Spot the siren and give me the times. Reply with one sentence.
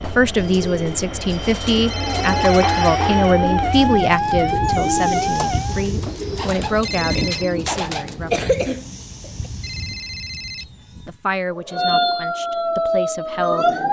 The siren can be heard from 2.1 to 5.8 s and from 11.6 to 13.8 s.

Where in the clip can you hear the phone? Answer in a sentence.
You can hear the phone from 1.9 to 2.9 s, from 6.8 to 7.5 s and from 9.6 to 10.8 s.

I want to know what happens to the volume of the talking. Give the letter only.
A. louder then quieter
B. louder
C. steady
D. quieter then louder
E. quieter
E.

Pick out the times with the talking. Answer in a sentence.
You can hear the talking from 0.0 to 8.7 s and from 10.6 to 13.8 s.